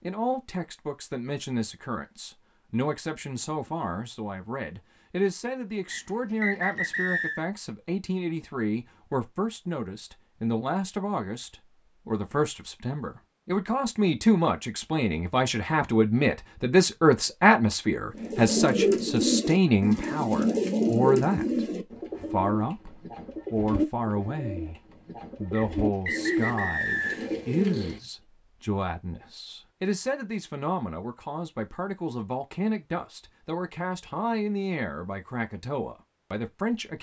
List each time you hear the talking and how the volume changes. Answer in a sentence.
The talking can be heard from 0.0 to 36.9 s, getting louder then quieter.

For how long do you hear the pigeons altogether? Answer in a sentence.
The pigeons can be heard for 10 seconds in total.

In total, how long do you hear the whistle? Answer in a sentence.
You can hear the whistle for 3 seconds altogether.